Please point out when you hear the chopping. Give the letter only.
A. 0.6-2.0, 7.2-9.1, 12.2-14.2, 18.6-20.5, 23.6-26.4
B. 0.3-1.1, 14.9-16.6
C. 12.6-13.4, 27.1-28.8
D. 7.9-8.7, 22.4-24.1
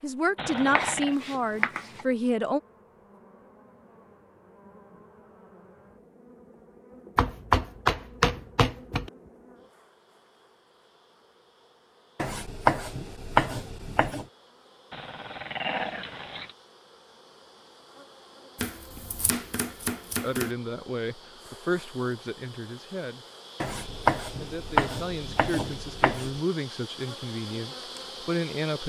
A.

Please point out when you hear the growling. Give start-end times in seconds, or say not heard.
0.3-1.1, 14.9-16.6.